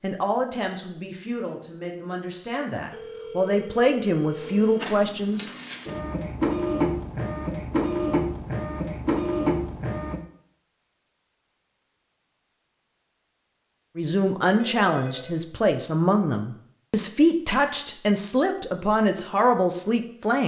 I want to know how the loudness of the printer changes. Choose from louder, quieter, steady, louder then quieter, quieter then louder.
louder.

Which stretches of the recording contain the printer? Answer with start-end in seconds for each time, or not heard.
4.4-10.2.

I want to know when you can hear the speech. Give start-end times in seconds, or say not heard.
0.0-5.5, 13.9-20.4.